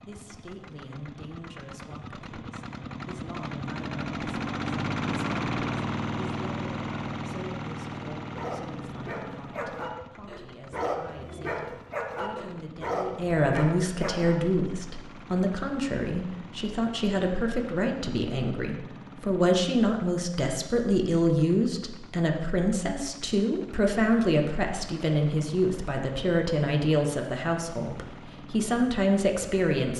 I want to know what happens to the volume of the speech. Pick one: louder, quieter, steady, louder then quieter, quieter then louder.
louder.